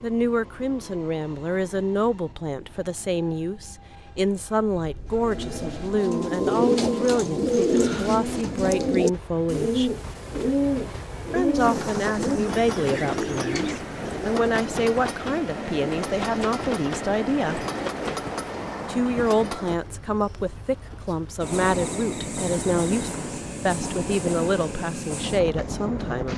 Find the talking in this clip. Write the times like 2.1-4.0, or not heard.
0.0-9.9, 11.3-17.6, 18.9-26.3.